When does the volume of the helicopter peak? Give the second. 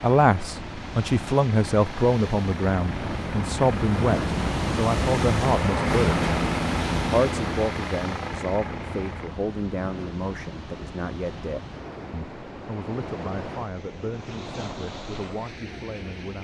6 s.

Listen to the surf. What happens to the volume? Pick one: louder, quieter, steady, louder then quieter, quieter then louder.
louder then quieter.